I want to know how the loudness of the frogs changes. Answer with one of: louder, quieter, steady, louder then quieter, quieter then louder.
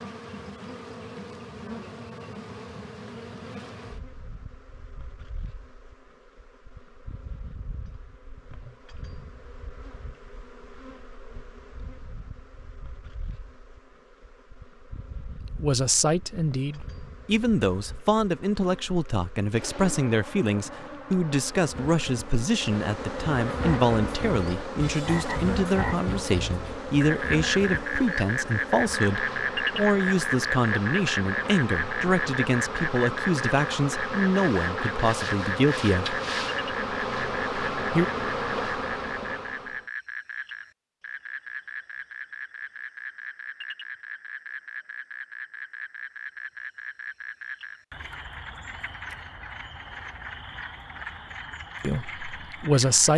quieter.